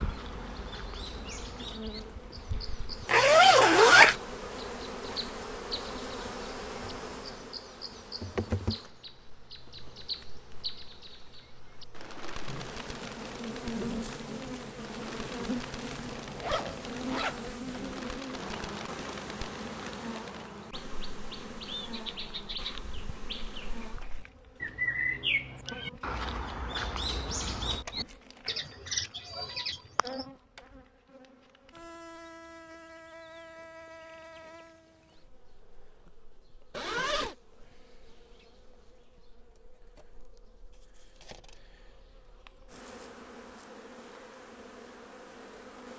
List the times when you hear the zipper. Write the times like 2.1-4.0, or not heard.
3.0-4.2, 16.2-17.6, 36.7-37.4.